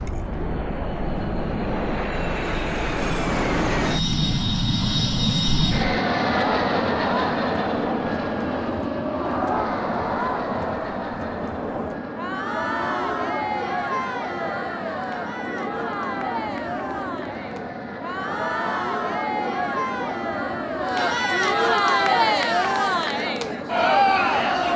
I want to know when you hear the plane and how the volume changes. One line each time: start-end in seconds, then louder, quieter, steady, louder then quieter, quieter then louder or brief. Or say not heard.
0.0-24.7 quieter.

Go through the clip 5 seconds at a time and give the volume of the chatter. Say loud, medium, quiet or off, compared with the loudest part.
quiet, medium, medium, medium, loud.